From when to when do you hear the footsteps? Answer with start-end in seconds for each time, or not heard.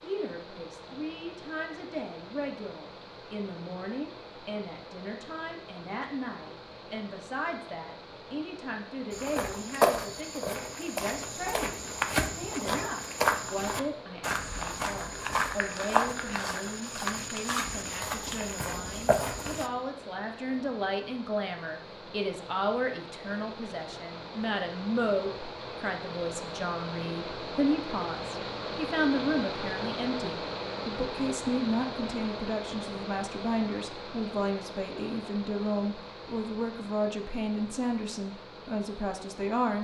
9.1-19.7.